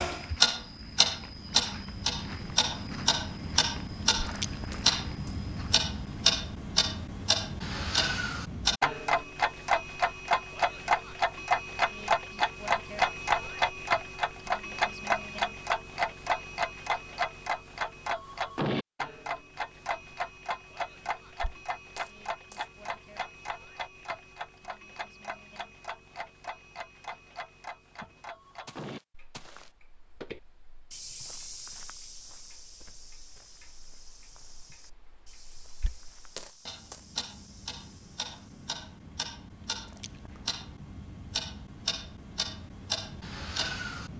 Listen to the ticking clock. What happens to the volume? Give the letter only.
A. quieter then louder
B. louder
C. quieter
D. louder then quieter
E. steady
A.